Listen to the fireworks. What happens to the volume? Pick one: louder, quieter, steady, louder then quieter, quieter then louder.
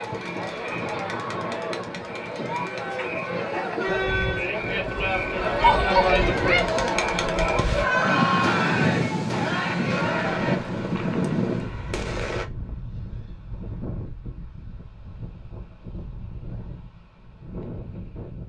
quieter.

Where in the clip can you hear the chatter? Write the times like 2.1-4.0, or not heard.
0.0-10.6.